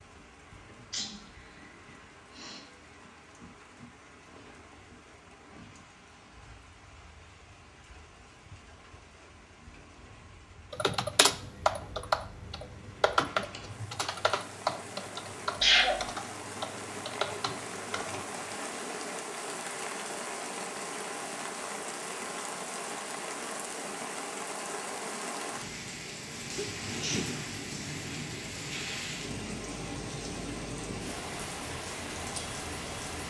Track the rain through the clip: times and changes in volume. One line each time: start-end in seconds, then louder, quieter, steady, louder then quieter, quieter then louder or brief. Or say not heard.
0.0-33.2 louder.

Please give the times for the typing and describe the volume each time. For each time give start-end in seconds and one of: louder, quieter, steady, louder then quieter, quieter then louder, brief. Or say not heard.
10.7-18.6 quieter.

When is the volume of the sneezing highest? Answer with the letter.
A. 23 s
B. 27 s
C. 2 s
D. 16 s
D.